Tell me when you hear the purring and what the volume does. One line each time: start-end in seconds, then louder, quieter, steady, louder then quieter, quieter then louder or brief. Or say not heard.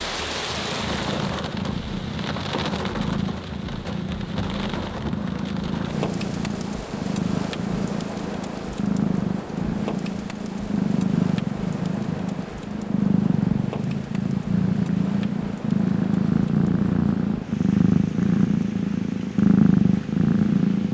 0.1-20.9 louder.